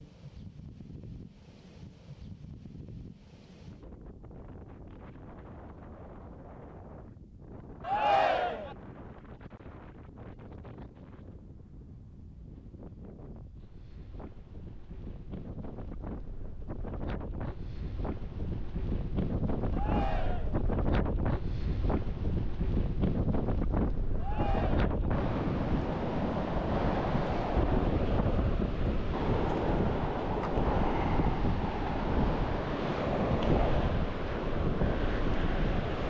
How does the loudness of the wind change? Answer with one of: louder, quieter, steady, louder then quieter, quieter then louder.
louder.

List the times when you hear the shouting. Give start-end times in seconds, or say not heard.
7.8-8.8, 19.7-20.6, 24.1-25.1.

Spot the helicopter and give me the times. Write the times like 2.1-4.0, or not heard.
not heard.